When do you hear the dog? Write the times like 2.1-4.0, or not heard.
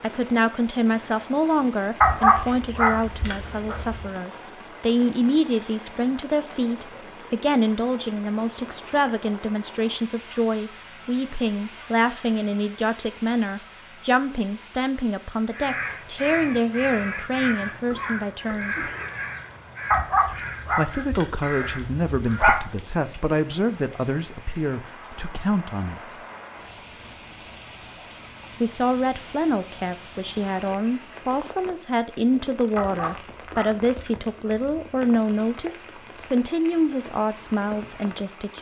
2.0-4.0, 19.9-22.6, 32.8-35.0.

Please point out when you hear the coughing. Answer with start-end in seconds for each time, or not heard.
17.7-19.2.